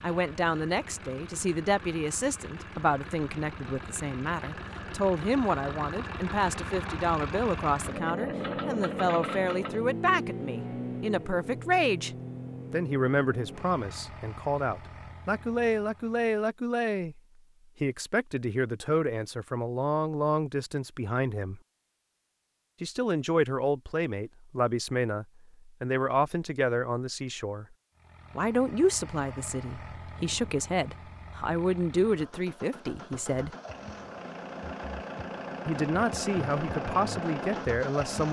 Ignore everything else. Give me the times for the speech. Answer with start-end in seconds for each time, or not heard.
0.0-12.1, 12.7-17.2, 17.8-21.6, 22.8-27.6, 28.4-33.5, 35.6-38.2.